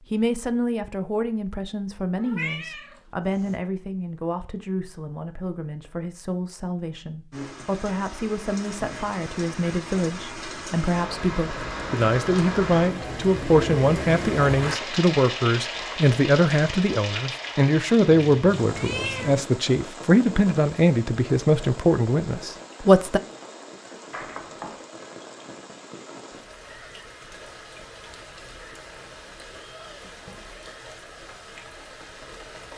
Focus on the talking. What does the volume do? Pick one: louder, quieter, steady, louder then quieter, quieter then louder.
louder.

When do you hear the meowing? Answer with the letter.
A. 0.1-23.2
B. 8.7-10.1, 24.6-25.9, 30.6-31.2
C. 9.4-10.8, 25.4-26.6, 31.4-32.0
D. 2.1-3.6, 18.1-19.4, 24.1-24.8
D.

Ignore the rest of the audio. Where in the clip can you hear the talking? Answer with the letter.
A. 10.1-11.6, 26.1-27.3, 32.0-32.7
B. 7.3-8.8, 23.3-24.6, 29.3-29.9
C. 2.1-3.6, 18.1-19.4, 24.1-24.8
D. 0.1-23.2
D.